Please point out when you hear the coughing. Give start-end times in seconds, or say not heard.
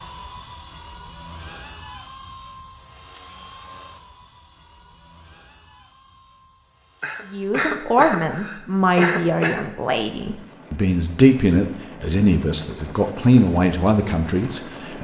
7.0-9.7.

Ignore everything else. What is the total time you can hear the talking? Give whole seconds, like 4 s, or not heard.
8 s.